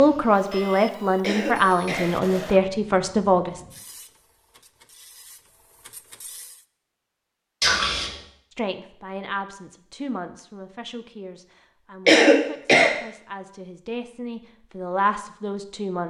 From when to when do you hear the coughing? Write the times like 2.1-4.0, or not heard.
1.2-2.1, 7.6-8.2, 12.1-12.9.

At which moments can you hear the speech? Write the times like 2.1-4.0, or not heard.
0.0-3.6, 8.6-16.0.